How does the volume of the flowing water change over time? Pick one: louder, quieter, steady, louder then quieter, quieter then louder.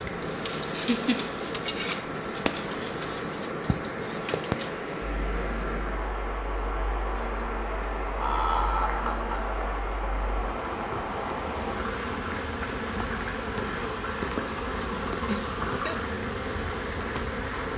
steady.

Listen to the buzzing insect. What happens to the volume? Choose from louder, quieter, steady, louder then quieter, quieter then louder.
quieter then louder.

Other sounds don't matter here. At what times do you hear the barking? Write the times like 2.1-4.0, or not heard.
not heard.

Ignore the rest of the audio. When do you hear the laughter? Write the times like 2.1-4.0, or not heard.
0.7-1.2, 8.2-9.5, 15.2-16.0.